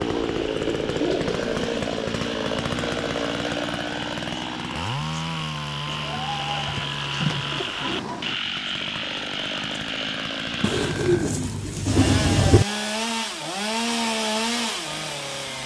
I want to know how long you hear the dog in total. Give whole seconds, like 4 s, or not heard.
not heard.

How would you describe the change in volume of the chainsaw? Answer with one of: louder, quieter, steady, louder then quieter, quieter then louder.
quieter then louder.